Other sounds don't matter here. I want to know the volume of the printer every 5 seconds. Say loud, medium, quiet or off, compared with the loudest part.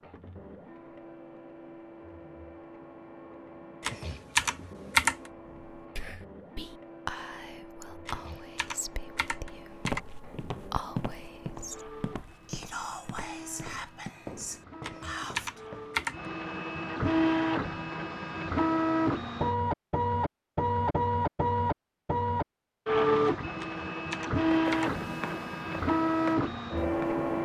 quiet, quiet, quiet, loud, loud, loud.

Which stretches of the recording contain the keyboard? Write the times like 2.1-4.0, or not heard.
3.8-5.2, 8.1-10.0, 14.8-16.1, 23.6-25.1.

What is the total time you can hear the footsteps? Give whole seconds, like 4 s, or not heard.
9 s.